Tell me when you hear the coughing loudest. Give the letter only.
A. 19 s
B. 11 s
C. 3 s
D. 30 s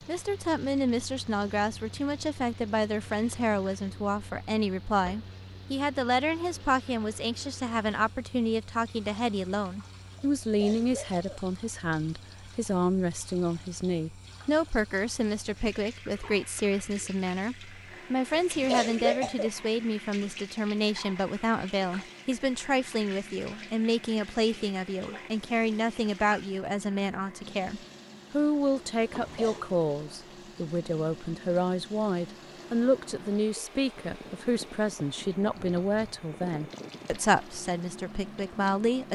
A.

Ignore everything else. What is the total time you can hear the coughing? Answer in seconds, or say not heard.
3 s.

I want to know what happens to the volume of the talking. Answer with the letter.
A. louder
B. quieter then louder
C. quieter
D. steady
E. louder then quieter
D.